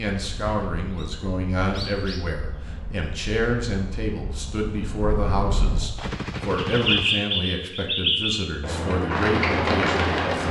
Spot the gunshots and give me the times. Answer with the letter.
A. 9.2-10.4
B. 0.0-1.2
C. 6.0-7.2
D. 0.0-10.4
C.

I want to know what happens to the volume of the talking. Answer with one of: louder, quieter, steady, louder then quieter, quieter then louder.
steady.